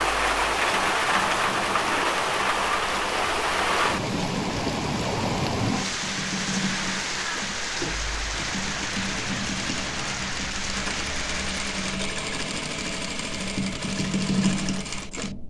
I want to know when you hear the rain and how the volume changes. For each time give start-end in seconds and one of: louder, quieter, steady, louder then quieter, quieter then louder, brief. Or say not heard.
0.0-12.0 quieter.